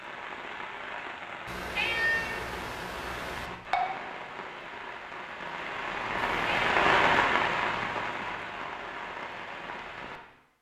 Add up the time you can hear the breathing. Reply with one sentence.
The breathing can't be heard in this clip.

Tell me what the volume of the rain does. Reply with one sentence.
The volume of the rain goes up, then down.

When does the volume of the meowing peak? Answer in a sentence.
The volume of the meowing peaks at 2 seconds.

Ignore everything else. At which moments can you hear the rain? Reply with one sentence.
You can hear the rain from 0.0 to 10.5 s.